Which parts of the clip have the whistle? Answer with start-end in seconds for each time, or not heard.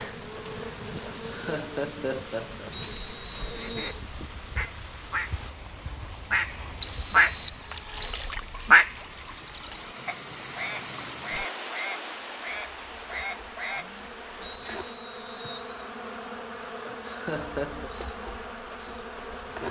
2.7-4.0, 6.8-8.3, 14.4-15.7.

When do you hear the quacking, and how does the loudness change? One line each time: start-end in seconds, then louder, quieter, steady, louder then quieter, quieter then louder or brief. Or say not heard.
3.5-14.8 louder then quieter.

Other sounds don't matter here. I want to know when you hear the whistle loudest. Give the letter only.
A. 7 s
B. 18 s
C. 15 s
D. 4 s
A.